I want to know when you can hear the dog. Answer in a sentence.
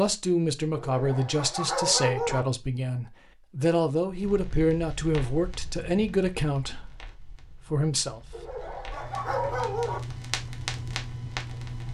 You can hear the dog from 0.8 to 2.5 s and from 8.3 to 10.0 s.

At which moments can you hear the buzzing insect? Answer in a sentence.
You can't hear the buzzing insect here.